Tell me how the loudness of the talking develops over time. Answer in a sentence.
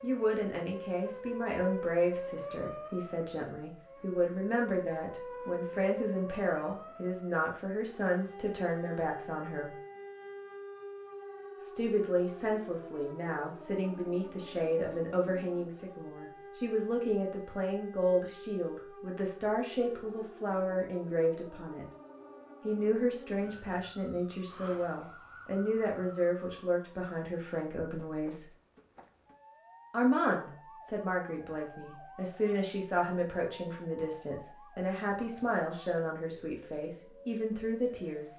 The loudness of the talking stays about the same.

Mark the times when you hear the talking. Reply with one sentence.
The talking can be heard from 0.0 to 9.7 s, from 11.6 to 21.9 s, from 22.6 to 28.4 s and from 29.9 to 38.3 s.